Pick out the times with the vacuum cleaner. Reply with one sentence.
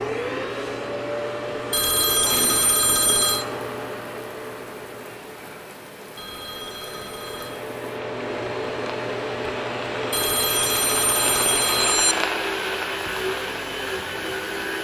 The vacuum cleaner can be heard from 0.0 to 14.7 s.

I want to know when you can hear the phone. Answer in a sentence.
The phone can be heard from 1.7 to 3.5 s, from 6.2 to 7.7 s and from 10.1 to 12.2 s.